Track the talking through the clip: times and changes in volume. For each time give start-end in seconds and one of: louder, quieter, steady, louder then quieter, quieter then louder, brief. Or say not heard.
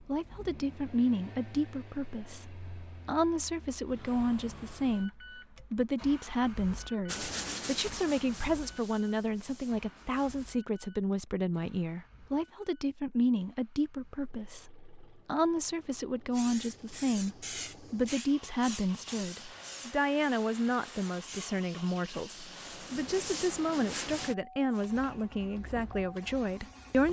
0.1-27.0 steady.